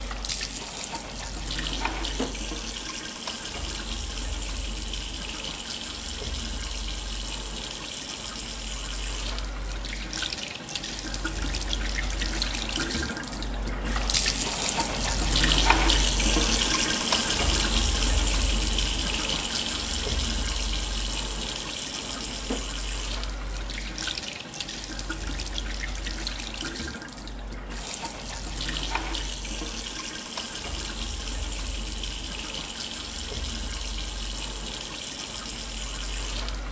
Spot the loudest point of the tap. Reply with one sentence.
The volume of the tap peaks at 16 seconds.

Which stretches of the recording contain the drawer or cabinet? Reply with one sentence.
You can hear the drawer or cabinet from 1.9 to 2.4 s and from 22.0 to 22.9 s.